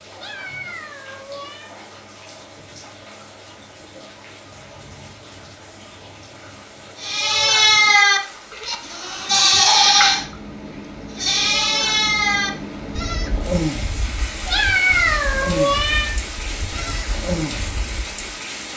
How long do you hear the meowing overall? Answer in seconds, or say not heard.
3 s.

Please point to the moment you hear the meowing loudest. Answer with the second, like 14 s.
15 s.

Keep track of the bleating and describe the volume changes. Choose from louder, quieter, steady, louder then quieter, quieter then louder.
quieter.